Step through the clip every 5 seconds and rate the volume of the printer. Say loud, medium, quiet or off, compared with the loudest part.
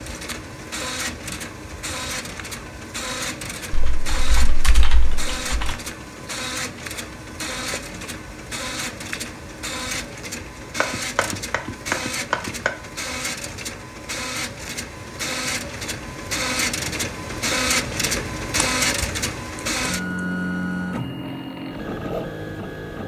medium, medium, medium, loud, loud.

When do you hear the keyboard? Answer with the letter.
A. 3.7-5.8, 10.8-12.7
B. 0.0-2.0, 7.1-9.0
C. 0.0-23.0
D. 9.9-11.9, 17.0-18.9
A.